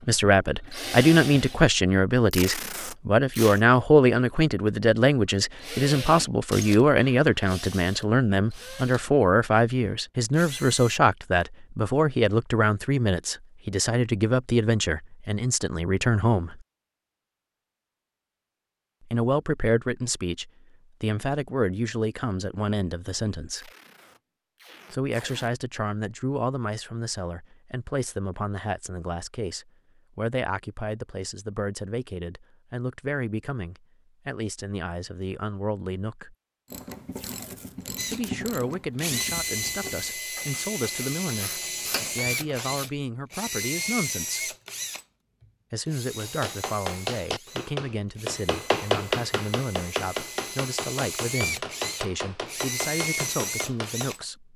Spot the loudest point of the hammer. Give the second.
49 s.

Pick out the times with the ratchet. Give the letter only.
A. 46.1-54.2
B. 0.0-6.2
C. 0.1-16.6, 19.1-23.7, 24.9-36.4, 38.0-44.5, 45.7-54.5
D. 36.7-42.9
D.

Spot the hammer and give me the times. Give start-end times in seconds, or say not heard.
46.1-54.2.